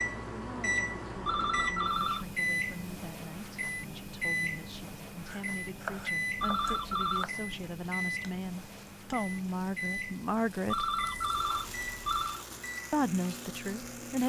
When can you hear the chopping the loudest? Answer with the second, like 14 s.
6 s.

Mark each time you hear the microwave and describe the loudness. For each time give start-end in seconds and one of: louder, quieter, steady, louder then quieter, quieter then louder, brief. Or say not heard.
0.0-14.2 quieter.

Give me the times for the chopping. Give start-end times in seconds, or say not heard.
5.2-7.3.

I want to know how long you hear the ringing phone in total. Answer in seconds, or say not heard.
4 s.